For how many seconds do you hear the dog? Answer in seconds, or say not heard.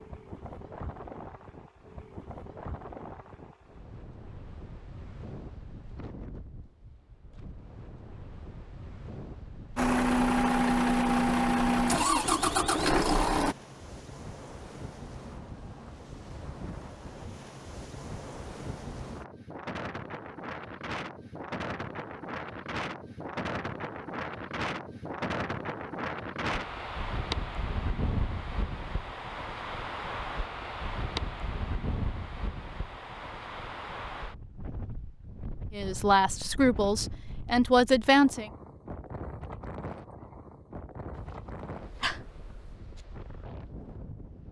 2 s.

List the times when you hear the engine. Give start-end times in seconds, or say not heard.
9.8-13.6.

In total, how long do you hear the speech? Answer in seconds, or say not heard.
3 s.